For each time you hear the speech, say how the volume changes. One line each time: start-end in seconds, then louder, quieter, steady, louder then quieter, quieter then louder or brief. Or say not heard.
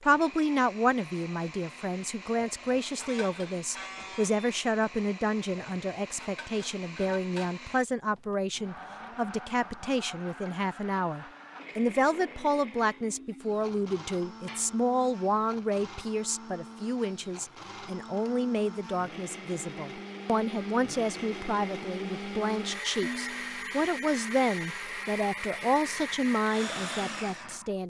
0.0-27.8 steady.